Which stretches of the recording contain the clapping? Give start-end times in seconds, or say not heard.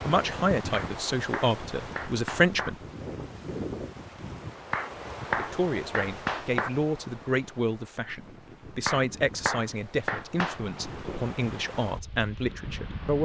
0.7-2.7, 4.7-6.7, 8.8-10.6.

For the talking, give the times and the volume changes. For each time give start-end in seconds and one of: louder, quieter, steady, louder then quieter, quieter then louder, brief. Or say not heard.
0.0-2.8 brief
5.3-13.1 steady.